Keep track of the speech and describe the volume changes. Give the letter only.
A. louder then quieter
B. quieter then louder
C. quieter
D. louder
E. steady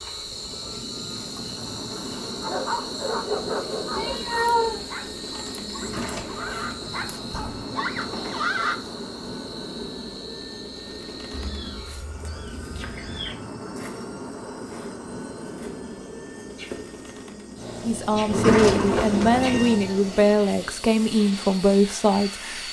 E.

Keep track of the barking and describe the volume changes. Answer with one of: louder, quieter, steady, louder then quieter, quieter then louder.
quieter then louder.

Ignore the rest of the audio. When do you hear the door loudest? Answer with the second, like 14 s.
19 s.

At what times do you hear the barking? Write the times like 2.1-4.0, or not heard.
2.4-8.8.